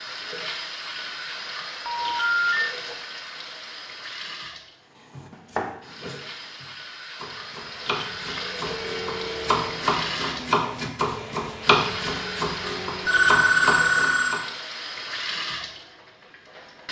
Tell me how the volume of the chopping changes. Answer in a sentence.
The loudness of the chopping goes up.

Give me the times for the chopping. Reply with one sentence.
The chopping can be heard from 5.1 to 14.4 s.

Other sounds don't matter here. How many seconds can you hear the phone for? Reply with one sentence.
You can hear the phone for 3 seconds altogether.